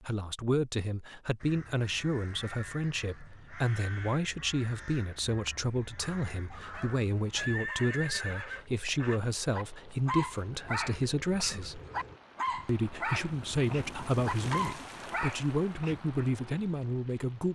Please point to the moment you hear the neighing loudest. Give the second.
8 s.